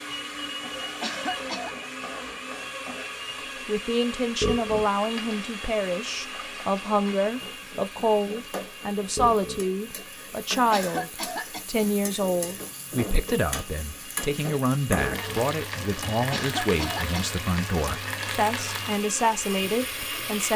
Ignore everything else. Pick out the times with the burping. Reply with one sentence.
You can hear the burping from 4.4 to 4.9 s, from 9.2 to 9.7 s and from 14.9 to 15.4 s.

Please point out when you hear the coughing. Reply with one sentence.
You can hear the coughing from 1.0 to 1.8 s, from 10.7 to 11.7 s and from 16.3 to 17.3 s.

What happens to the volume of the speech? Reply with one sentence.
The volume of the speech stays about the same.